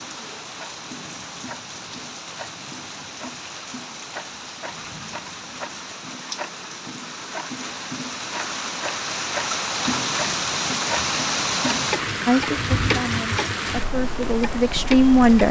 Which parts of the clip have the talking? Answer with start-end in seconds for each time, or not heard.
12.2-15.4.